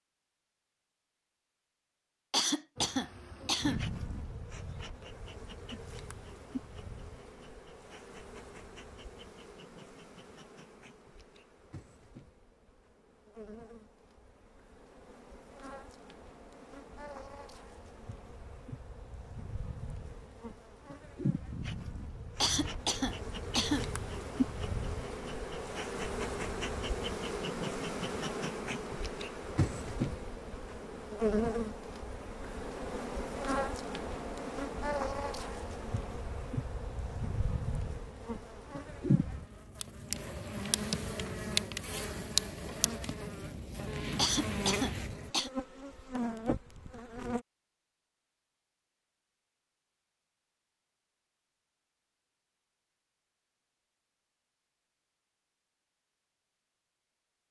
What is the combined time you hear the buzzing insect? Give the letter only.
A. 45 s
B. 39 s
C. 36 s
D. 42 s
A.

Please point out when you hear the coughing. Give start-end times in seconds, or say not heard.
2.3-3.8, 22.4-23.9, 44.1-45.5.